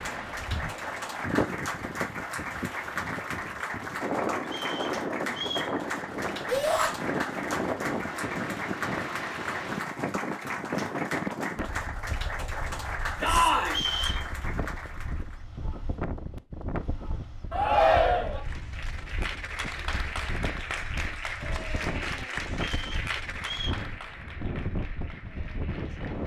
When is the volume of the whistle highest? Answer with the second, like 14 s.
14 s.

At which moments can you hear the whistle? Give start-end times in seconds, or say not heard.
4.5-5.8, 13.7-14.2, 22.7-23.9.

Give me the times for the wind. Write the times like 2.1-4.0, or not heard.
0.0-26.2.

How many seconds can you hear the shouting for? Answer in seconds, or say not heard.
2 s.